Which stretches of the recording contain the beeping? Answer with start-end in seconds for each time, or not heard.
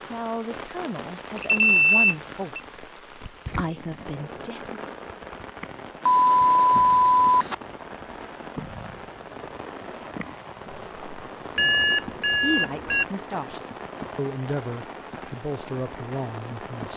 1.4-2.6, 6.0-7.5, 11.6-13.1.